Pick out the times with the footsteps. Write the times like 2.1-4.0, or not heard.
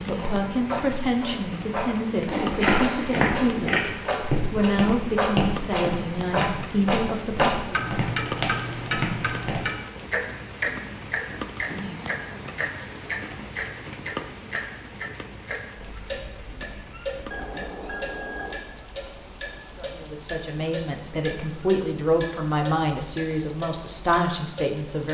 2.3-9.6.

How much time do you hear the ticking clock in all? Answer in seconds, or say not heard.
25 s.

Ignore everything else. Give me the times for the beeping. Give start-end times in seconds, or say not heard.
17.3-18.6.